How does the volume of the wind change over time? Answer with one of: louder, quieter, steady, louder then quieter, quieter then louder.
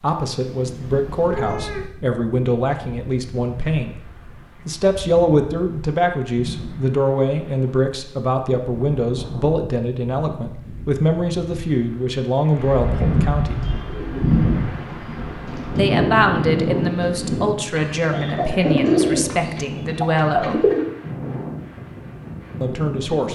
louder then quieter.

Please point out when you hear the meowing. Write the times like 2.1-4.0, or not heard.
0.3-1.9.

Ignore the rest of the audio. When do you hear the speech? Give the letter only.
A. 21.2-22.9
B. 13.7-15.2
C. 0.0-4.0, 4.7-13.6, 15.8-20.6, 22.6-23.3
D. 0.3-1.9
C.